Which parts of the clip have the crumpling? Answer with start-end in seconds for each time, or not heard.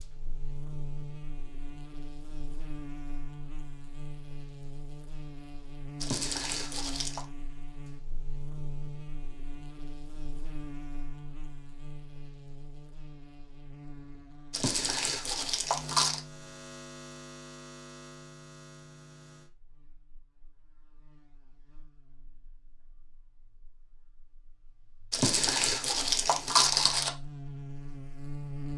6.0-7.2, 14.5-16.2, 25.1-27.1.